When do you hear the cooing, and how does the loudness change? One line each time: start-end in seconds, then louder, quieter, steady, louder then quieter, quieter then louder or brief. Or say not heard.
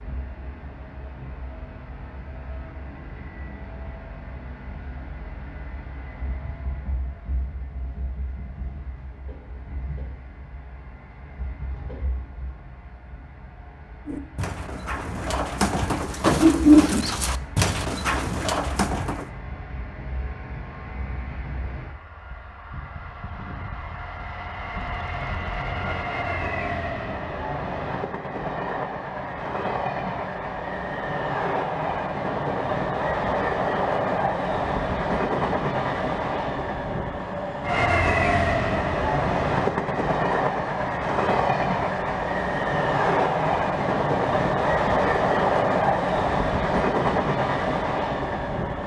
14.1-19.3 louder then quieter.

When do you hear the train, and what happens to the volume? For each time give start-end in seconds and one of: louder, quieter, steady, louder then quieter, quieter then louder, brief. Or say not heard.
0.0-48.8 louder.